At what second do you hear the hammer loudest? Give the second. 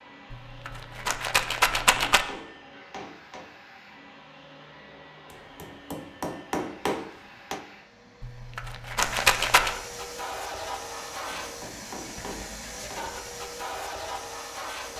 7 s.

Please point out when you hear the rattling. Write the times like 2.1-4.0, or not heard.
0.3-2.2, 8.2-9.8.